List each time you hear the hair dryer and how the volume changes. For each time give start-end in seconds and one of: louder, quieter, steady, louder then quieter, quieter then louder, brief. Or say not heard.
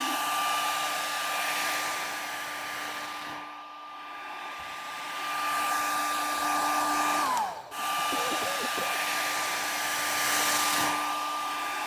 0.0-11.8 quieter then louder.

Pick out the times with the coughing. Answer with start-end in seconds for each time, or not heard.
8.0-9.0.